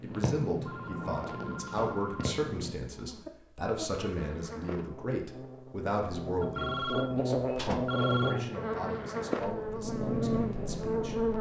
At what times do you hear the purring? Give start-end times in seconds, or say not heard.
0.0-2.8, 8.6-11.3.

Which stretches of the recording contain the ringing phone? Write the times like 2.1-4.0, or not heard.
0.7-2.4, 6.4-8.4.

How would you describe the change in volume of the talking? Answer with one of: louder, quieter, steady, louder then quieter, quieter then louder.
quieter.